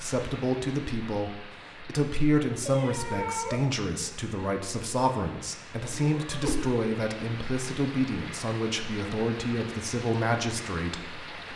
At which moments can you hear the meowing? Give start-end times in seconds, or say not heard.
2.6-3.6, 6.1-6.7.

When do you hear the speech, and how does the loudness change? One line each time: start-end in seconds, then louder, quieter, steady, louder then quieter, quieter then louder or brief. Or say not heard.
0.0-11.2 steady.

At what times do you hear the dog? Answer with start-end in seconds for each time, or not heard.
not heard.